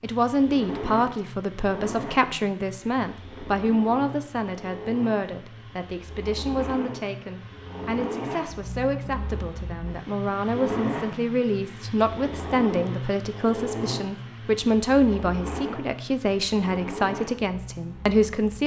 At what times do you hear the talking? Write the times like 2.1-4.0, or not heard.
0.0-18.6.